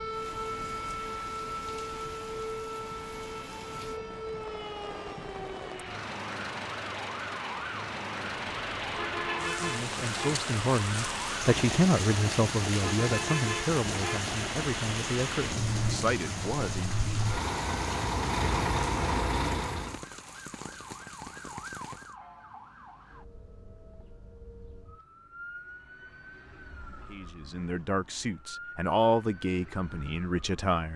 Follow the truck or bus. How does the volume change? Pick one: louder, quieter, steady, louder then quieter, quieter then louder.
louder.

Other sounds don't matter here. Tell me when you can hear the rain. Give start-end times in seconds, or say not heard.
0.0-22.1.